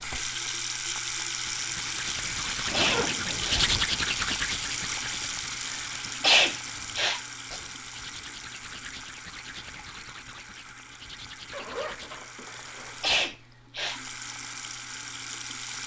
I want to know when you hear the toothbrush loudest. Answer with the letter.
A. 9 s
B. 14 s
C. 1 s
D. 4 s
D.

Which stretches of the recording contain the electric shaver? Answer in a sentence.
You can't hear the electric shaver here.